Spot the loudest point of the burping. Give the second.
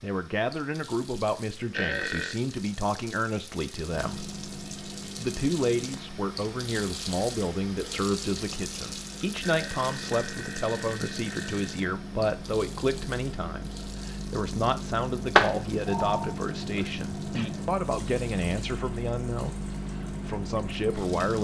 2 s.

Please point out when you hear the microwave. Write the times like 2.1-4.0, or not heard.
3.9-21.3.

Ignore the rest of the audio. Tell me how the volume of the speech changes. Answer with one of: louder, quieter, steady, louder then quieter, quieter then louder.
steady.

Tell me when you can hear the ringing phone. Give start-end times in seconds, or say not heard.
15.3-16.3.